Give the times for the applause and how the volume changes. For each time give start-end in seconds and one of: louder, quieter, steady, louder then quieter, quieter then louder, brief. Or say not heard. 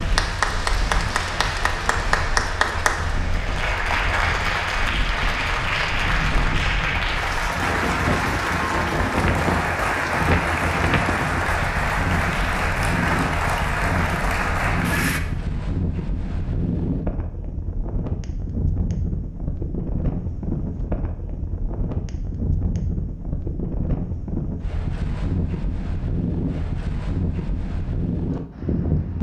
0.0-15.2 steady.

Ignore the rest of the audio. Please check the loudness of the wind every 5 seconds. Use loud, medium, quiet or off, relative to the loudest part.
medium, loud, loud, loud, loud, loud.